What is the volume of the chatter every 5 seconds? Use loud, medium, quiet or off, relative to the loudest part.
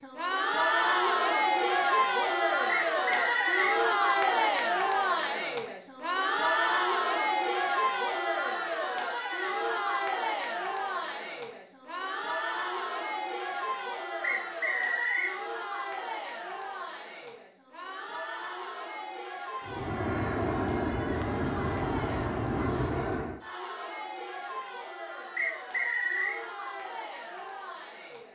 loud, loud, medium, quiet, quiet, quiet.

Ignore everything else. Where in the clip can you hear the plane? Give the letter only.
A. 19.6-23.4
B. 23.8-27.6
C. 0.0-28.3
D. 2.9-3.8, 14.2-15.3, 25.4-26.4
A.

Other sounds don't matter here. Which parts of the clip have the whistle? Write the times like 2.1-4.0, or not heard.
2.9-3.8, 14.2-15.3, 25.4-26.4.